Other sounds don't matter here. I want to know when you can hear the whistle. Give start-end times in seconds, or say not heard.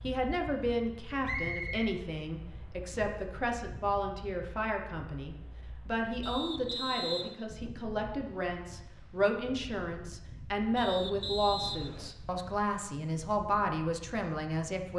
1.2-1.9, 6.2-7.3, 10.8-12.1.